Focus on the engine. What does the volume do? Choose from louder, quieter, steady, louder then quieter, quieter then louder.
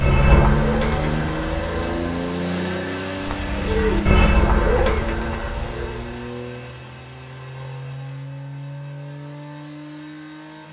quieter.